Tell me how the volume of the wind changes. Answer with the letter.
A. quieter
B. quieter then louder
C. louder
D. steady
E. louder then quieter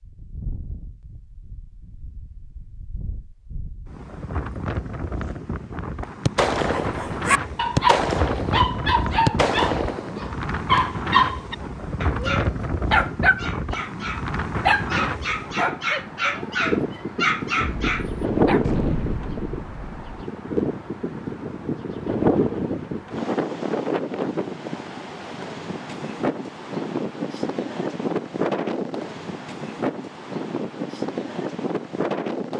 C.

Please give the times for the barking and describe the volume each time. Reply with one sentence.
You can hear the barking from 6.8 to 18.6 s, at a steady volume.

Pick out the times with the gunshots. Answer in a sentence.
The gunshots can be heard from 6.2 to 10.8 s and from 17.6 to 20.2 s.